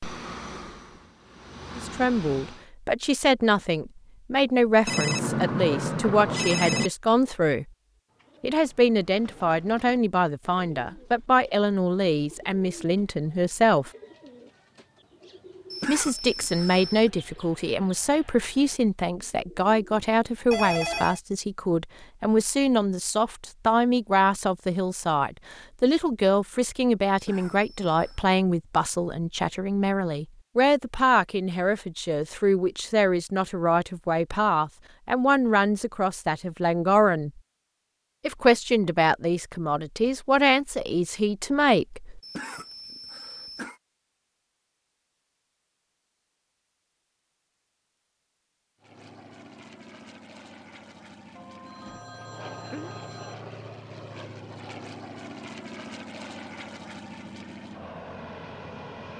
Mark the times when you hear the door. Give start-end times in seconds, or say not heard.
not heard.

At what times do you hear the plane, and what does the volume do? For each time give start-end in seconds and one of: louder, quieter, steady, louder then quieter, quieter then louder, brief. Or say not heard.
0.0-2.6 brief
48.8-59.1 louder.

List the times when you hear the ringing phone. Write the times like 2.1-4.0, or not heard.
4.8-6.9, 20.5-21.2, 51.4-53.4.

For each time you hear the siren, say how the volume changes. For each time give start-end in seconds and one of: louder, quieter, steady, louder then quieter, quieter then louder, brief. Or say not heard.
not heard.